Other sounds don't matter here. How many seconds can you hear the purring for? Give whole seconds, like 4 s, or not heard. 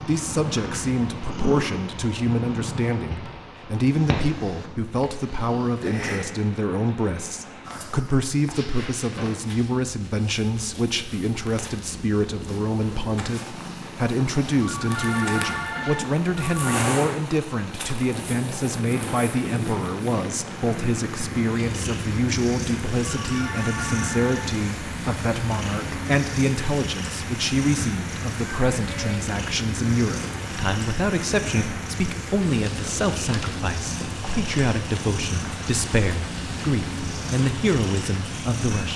39 s.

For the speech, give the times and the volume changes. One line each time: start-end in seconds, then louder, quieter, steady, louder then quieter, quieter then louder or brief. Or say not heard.
0.0-38.9 steady.